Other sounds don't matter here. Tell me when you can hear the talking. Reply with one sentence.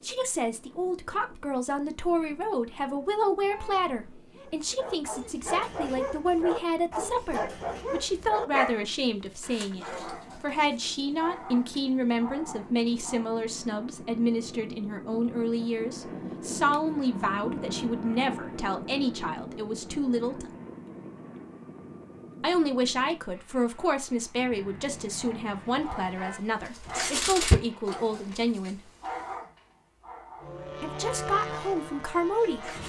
You can hear the talking from 0.0 to 20.4 s, from 22.4 to 28.8 s and from 30.8 to 32.7 s.